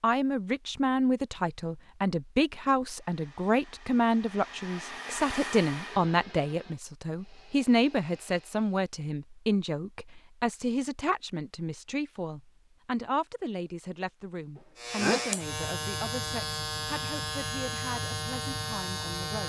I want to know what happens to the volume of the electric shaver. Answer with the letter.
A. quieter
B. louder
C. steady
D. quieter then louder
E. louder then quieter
C.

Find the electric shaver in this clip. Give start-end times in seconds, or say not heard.
14.8-19.4.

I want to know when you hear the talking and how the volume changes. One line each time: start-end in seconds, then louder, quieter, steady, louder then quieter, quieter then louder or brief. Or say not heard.
0.0-19.4 quieter.